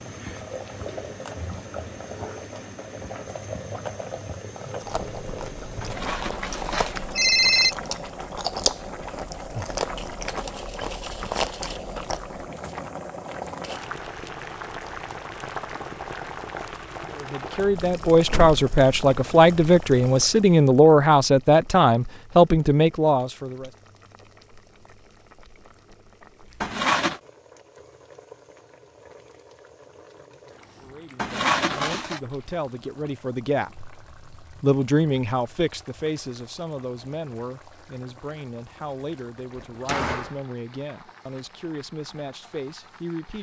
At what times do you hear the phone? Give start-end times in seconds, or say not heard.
5.8-7.8, 26.6-27.2, 31.1-32.2.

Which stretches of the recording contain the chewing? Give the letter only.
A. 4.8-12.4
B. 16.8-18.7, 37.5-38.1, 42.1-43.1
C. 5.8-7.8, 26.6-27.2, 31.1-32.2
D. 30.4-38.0
A.